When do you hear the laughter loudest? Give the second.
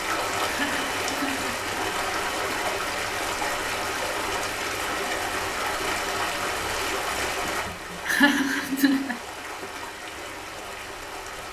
8 s.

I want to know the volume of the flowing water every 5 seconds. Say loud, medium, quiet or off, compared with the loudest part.
loud, loud, medium.